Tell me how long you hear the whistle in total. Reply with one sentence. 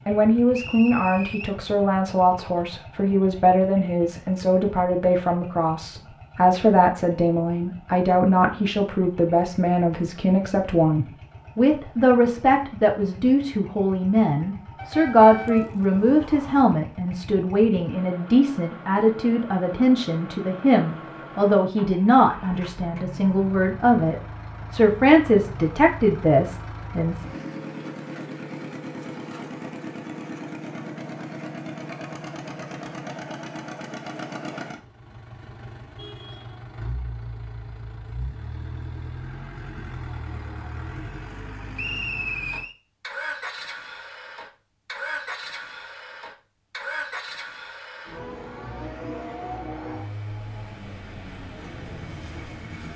You can hear the whistle for 2 seconds altogether.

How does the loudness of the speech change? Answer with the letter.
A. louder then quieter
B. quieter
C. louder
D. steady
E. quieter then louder
D.